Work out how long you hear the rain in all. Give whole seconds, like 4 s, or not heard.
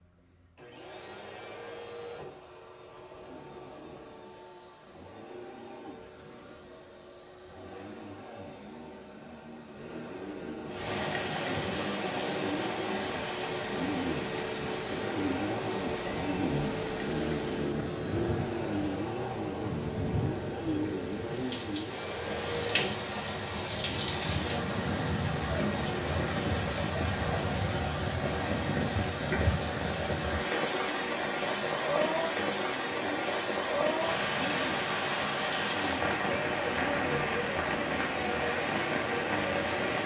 29 s.